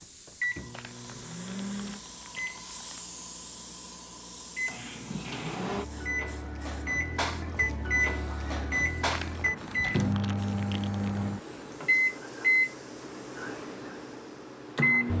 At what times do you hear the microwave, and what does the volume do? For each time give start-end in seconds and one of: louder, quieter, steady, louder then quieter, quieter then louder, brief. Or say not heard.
0.0-15.1 louder.